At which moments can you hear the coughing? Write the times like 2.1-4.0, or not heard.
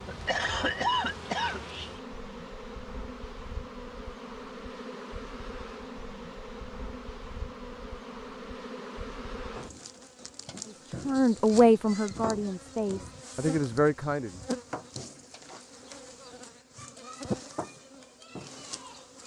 0.1-1.6.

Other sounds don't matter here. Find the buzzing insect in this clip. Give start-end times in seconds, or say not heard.
0.0-19.2.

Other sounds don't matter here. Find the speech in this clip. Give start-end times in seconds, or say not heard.
10.7-14.4.